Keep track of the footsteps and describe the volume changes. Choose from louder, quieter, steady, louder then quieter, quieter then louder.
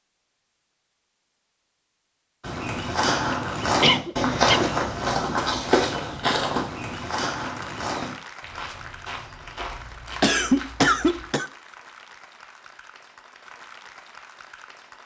quieter.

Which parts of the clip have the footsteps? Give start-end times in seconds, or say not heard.
2.4-11.3.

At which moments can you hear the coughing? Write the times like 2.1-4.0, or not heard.
3.8-4.7, 10.2-11.5.